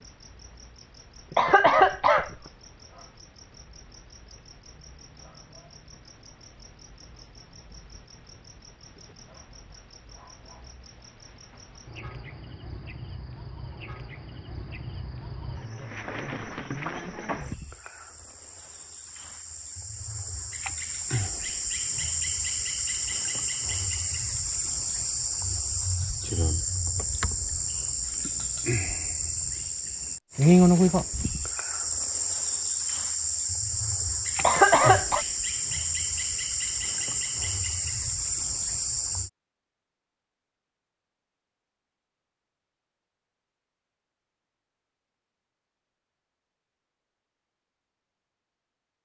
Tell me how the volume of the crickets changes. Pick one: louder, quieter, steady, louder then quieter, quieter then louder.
louder.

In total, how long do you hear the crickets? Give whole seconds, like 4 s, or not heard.
39 s.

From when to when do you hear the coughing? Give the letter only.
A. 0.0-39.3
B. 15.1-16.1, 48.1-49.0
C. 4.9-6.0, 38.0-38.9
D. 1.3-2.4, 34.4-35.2
D.